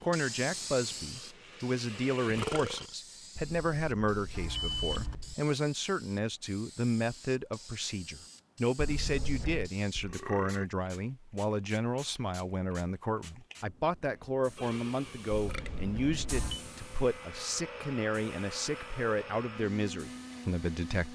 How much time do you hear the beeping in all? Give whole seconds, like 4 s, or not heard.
4 s.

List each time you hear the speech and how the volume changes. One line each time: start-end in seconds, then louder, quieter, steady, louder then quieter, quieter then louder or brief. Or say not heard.
0.0-21.0 steady.